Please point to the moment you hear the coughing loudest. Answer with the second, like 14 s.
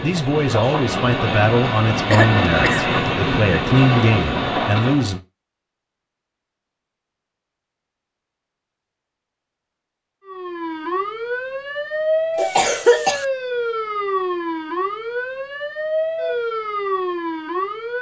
13 s.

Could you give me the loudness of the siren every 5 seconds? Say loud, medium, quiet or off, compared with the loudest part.
off, off, loud, loud.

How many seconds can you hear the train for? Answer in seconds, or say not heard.
5 s.